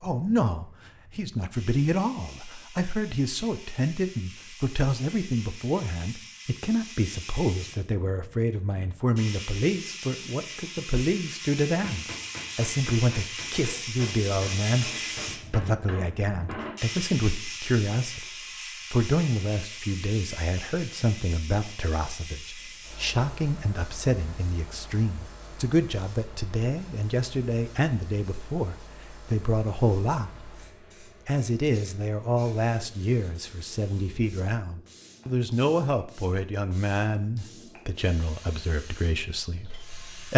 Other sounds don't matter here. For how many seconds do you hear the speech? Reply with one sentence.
The speech can be heard for 39 seconds in total.